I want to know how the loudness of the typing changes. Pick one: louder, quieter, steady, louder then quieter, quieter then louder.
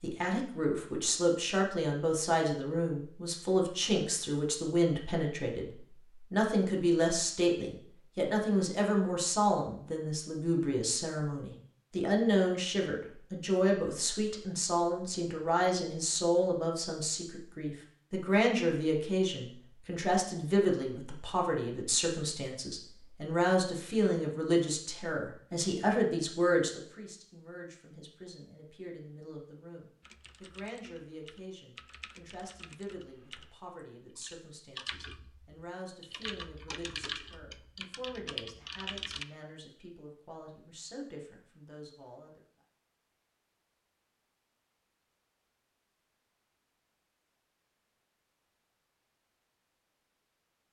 louder.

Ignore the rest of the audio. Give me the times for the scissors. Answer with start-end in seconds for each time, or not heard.
not heard.